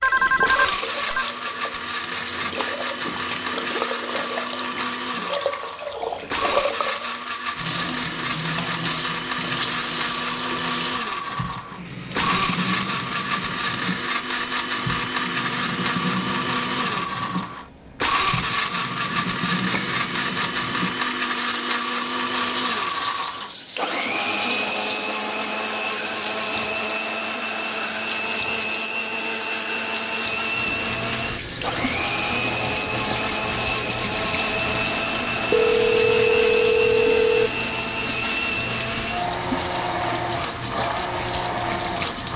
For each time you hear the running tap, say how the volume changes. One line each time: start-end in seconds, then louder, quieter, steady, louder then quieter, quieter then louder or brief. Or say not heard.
0.0-42.3 steady.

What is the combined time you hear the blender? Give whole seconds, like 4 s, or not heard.
42 s.